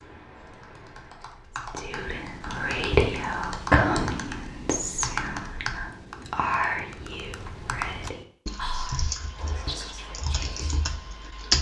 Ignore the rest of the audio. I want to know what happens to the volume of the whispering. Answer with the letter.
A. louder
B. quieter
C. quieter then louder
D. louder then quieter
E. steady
B.